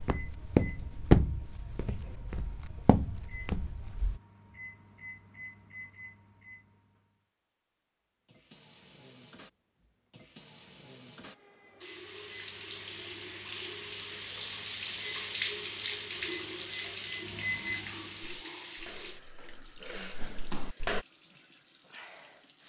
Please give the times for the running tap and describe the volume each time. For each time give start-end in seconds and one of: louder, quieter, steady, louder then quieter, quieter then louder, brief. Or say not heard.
8.2-22.6 louder then quieter.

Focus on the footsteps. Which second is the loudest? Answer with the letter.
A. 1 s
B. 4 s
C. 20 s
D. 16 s
A.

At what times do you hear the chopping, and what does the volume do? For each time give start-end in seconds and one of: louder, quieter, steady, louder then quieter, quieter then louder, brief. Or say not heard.
not heard.